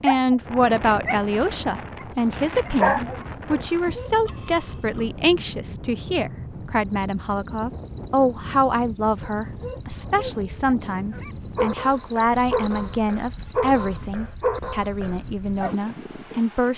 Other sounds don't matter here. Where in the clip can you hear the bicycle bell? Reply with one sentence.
The bicycle bell can be heard from 4.2 to 5.1 s.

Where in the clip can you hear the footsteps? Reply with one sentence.
You can't hear the footsteps here.